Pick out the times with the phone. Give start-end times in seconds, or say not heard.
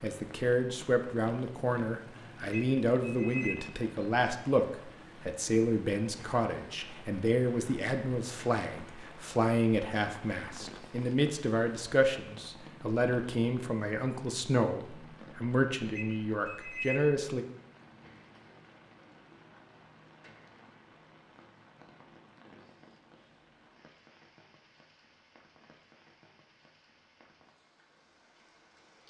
2.5-3.5, 15.9-17.0.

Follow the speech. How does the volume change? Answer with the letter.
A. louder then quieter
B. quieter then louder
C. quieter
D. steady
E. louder
D.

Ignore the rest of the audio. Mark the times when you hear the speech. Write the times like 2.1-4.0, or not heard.
0.0-17.4.